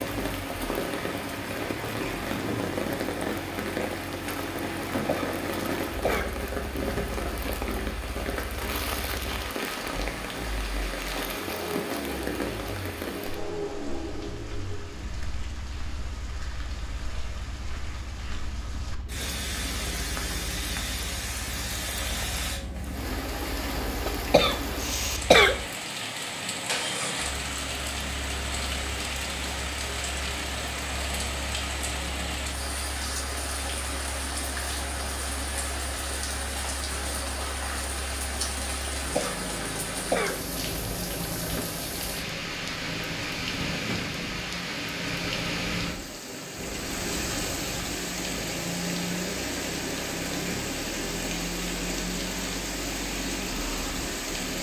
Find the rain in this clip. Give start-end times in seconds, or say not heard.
0.0-54.5.